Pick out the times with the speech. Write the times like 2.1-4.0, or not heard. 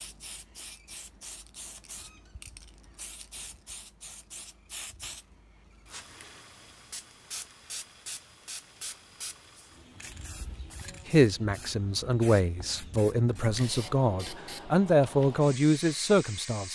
11.1-16.7.